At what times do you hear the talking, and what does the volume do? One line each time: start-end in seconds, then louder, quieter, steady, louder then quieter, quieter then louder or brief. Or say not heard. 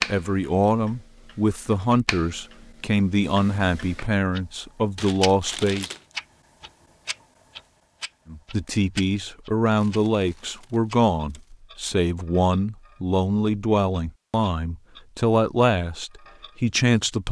0.0-5.8 steady
8.3-17.2 steady.